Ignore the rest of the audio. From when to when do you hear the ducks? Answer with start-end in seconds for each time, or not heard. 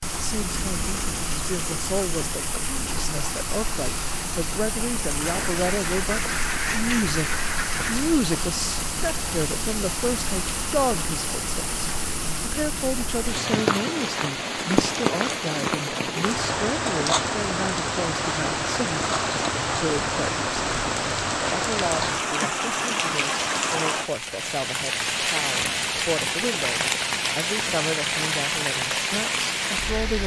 5.2-8.2.